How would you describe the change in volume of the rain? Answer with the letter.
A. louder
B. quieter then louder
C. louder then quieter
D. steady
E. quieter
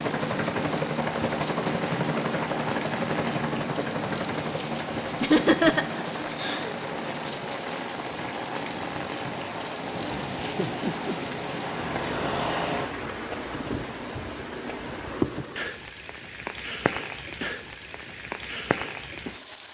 D.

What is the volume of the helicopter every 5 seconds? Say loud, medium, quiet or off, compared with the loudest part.
loud, medium, loud, off.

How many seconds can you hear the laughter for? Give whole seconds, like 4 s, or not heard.
2 s.